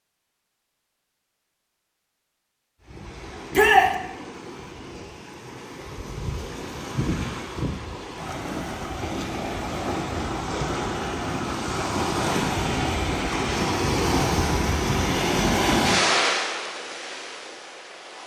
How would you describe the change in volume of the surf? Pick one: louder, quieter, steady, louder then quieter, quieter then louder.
louder.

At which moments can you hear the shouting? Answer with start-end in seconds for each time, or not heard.
3.5-4.0.